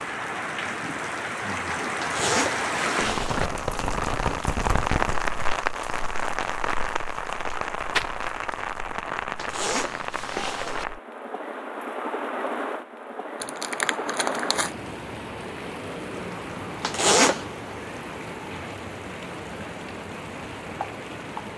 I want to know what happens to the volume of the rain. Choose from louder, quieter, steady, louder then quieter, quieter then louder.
quieter.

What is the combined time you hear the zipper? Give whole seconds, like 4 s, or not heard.
4 s.